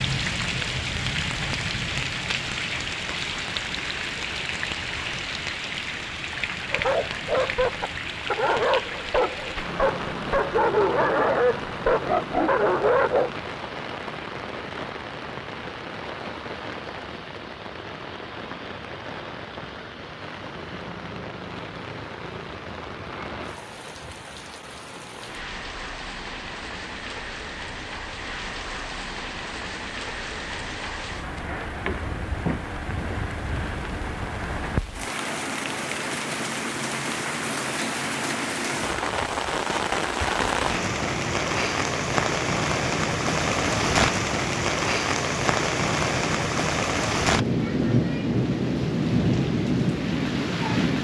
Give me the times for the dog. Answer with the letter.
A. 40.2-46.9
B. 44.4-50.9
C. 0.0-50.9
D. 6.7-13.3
D.